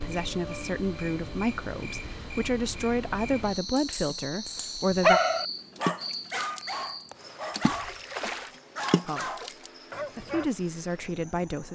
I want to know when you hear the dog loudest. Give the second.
5 s.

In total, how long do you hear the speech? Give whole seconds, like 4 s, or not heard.
8 s.